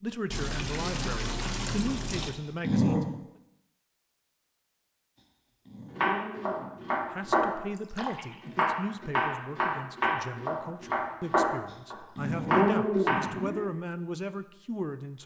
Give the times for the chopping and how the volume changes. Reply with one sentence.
The chopping can be heard from 6.0 to 13.2 s, at a steady volume.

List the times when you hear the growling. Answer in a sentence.
The growling can be heard from 2.2 to 3.0 s, from 5.2 to 7.2 s and from 11.7 to 13.7 s.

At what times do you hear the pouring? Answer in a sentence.
You can hear the pouring from 0.3 to 2.3 s and from 7.8 to 8.7 s.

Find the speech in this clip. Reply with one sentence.
The speech can be heard from 0.0 to 3.0 s and from 7.1 to 15.2 s.